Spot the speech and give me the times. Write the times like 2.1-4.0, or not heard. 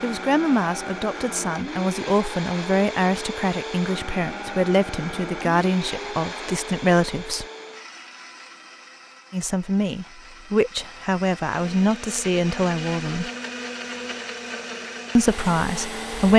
0.0-7.5, 9.3-13.3, 15.2-16.3.